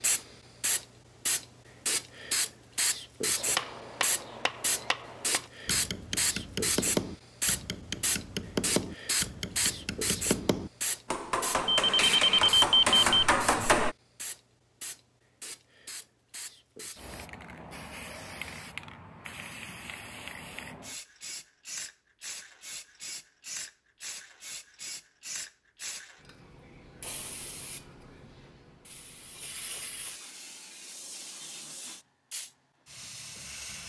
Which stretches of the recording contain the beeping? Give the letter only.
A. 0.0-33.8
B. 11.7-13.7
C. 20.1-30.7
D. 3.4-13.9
B.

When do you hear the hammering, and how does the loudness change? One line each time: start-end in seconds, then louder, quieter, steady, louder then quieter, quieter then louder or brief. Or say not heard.
3.4-13.9 louder.